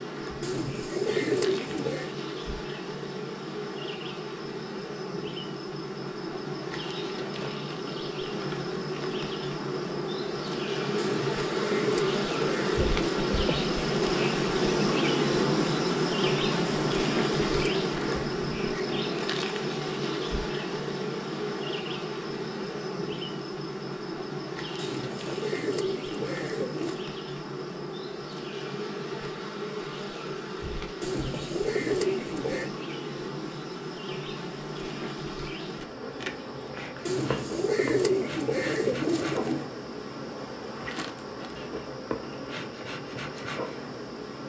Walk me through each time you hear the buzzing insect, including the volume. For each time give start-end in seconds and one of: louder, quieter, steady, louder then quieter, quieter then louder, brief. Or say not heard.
0.0-44.4 louder then quieter.